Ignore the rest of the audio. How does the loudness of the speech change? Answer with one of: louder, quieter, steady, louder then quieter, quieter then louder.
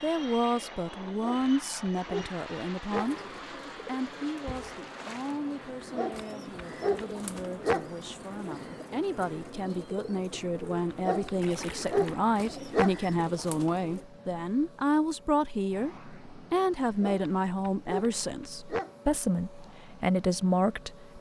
quieter then louder.